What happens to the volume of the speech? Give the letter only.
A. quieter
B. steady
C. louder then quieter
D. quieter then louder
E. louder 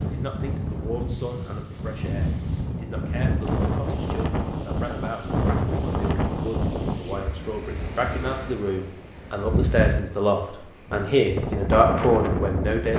E.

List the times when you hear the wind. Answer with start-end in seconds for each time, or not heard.
0.0-12.9.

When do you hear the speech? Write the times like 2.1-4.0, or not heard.
0.0-12.9.